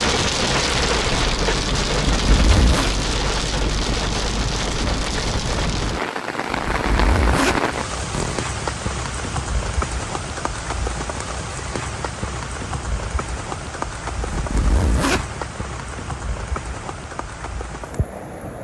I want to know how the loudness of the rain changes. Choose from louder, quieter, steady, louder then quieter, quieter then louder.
quieter.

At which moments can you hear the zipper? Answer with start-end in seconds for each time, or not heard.
1.9-2.9, 6.7-8.4, 14.2-15.2.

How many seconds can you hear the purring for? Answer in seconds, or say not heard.
not heard.